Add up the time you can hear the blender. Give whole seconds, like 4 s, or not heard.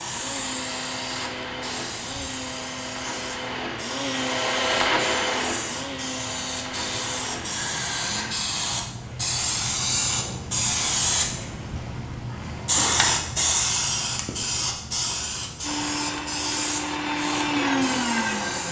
11 s.